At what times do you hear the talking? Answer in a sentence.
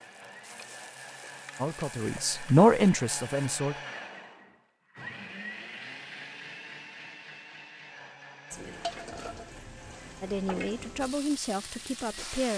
You can hear the talking from 1.6 to 3.8 s and from 10.2 to 12.5 s.